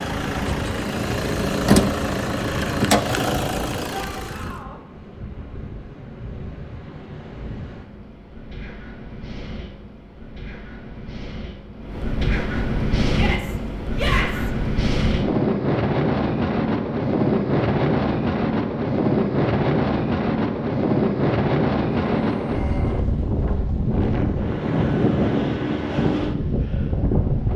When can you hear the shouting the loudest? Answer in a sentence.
The volume of the shouting peaks at 14 seconds.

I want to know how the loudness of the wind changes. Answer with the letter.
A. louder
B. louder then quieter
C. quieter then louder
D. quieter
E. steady
A.